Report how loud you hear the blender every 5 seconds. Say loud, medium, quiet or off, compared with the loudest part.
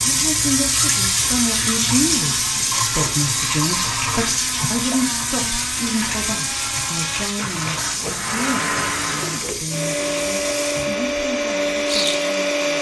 quiet, medium, loud.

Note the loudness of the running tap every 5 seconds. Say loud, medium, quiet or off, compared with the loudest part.
loud, medium, medium.